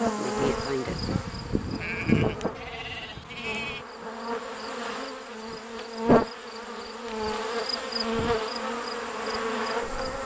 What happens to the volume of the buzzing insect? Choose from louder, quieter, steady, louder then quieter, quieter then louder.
quieter then louder.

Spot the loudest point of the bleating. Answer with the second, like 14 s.
2 s.